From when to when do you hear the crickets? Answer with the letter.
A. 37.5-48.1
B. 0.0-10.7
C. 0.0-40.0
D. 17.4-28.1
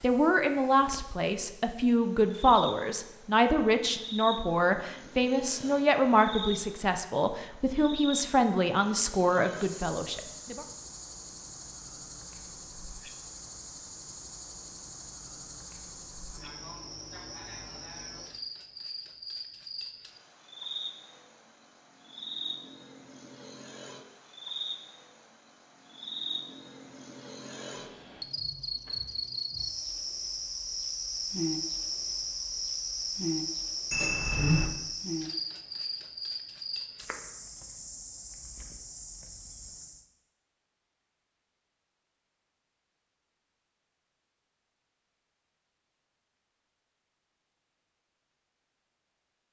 C.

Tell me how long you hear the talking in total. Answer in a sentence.
The talking can be heard for 11 seconds in total.